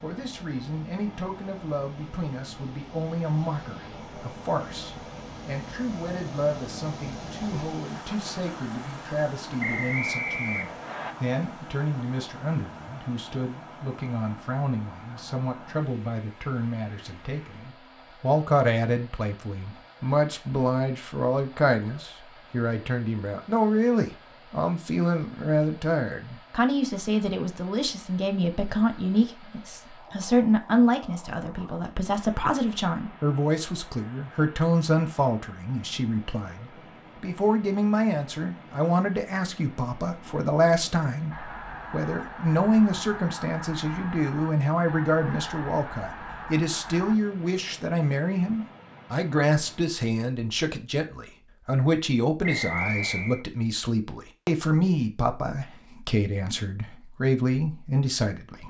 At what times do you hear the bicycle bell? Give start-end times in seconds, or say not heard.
not heard.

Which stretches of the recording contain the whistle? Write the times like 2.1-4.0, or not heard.
9.6-11.2, 52.4-53.5.